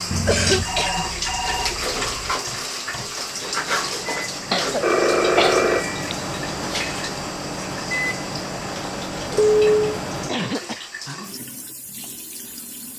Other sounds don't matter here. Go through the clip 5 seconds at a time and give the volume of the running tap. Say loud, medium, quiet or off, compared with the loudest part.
loud, medium, medium.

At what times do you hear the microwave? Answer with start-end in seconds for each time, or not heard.
0.0-10.3.